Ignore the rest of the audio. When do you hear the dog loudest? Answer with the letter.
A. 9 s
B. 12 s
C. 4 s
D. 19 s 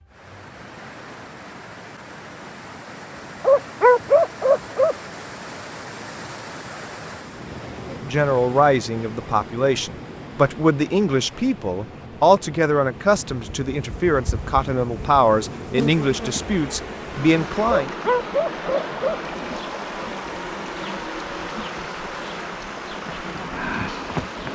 C.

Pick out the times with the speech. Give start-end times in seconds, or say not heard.
7.9-17.9.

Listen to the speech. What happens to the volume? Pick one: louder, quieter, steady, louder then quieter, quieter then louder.
steady.